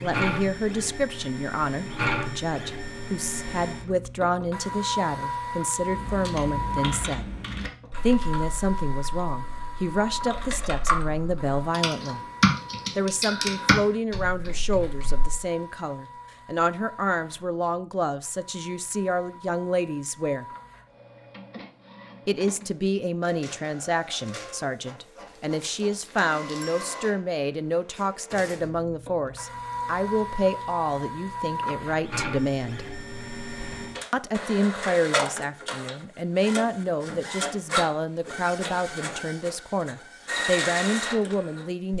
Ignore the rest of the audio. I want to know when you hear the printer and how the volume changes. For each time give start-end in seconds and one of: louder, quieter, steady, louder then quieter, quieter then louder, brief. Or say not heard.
0.0-41.9 quieter then louder.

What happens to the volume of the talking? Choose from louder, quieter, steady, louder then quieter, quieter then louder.
steady.